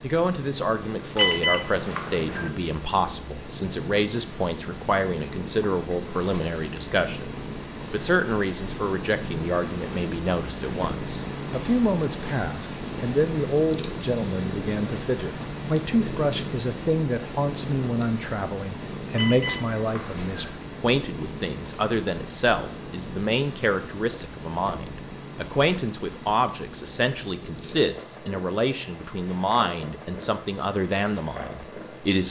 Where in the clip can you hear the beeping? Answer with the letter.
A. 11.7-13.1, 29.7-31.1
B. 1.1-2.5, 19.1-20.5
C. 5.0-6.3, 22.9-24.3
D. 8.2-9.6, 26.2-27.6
B.